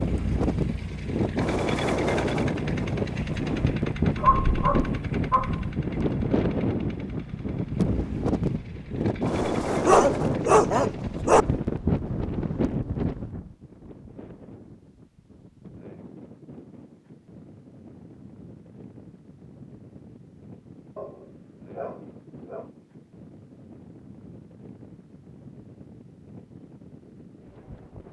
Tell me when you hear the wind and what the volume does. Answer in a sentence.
You can hear the wind from 0.0 to 28.0 s, getting quieter.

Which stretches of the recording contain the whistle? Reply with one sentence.
You can't hear the whistle here.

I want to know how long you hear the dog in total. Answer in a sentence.
The dog can be heard for 5 seconds in total.